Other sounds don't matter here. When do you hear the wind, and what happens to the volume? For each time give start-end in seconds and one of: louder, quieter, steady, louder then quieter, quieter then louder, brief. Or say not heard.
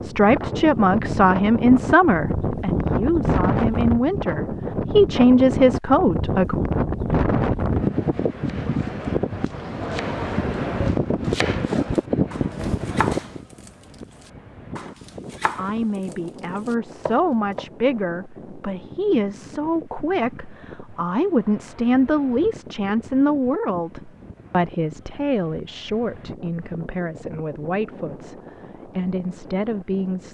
0.0-30.2 quieter.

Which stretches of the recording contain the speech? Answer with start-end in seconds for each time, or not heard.
0.0-6.5, 15.6-30.2.